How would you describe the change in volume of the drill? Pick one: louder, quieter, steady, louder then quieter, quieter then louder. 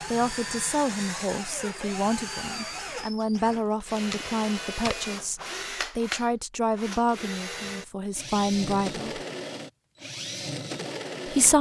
steady.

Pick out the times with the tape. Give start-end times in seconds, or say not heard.
4.0-5.0.